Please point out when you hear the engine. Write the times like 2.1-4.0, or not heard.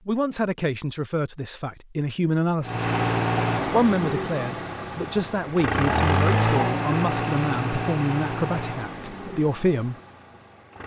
2.6-10.8.